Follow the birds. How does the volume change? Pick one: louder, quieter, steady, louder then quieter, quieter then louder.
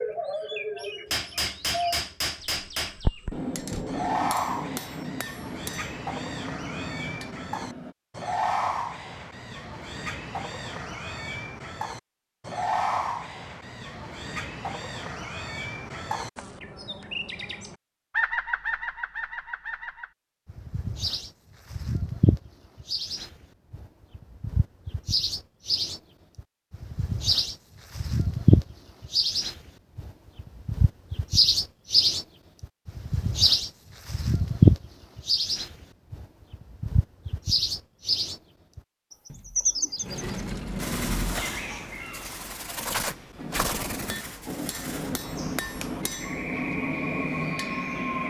louder then quieter.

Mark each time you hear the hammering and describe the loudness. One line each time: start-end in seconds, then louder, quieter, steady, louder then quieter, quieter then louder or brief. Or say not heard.
1.1-8.0 quieter
43.4-48.2 louder.